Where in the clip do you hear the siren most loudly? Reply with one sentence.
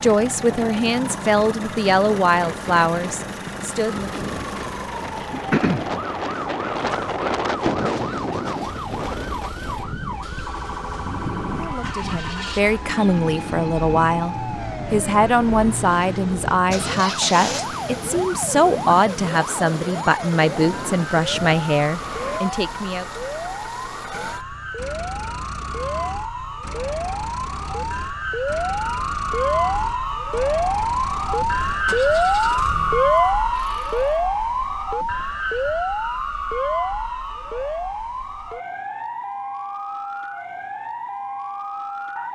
The loudest moment of the siren is at 33 seconds.